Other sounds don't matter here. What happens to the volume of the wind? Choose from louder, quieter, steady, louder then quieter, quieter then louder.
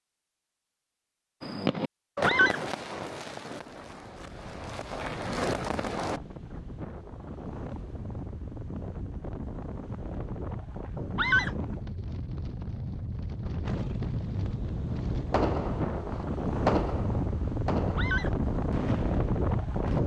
louder.